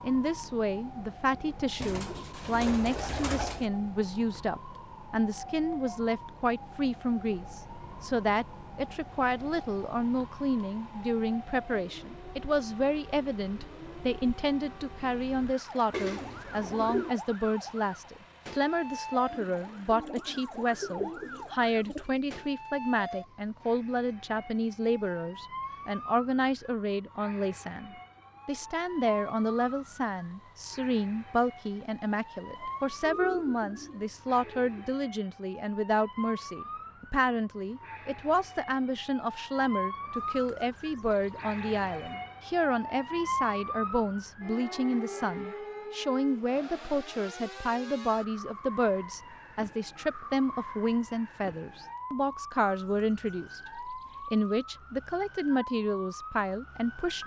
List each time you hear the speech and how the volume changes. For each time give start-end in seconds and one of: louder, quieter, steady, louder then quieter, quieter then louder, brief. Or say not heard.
0.0-57.2 steady.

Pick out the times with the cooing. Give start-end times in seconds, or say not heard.
1.8-3.6, 15.9-17.1, 19.3-22.1, 32.5-35.0, 40.1-42.1, 52.9-54.5.